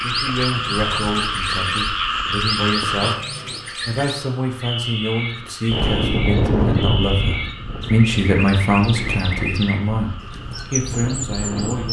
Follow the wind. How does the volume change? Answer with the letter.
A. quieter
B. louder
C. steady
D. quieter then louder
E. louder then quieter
A.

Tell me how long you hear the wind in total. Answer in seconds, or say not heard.
6 s.